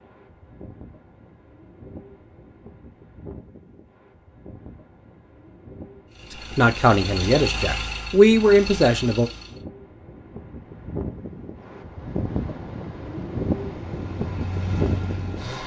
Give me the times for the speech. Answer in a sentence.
You can hear the speech from 6.5 to 9.3 s.